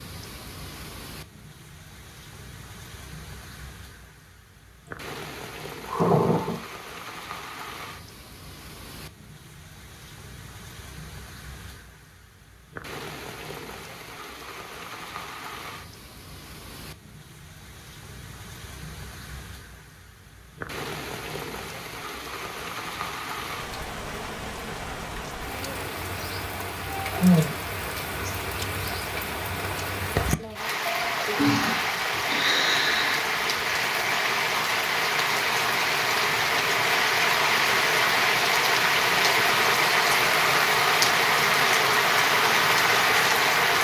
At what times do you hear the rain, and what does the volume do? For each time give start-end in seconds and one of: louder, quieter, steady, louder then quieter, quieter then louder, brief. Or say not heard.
0.0-43.7 louder.